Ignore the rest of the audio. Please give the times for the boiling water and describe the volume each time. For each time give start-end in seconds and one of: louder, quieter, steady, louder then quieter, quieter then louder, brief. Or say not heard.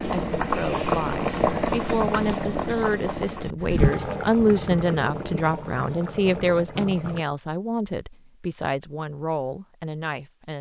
0.0-7.2 quieter.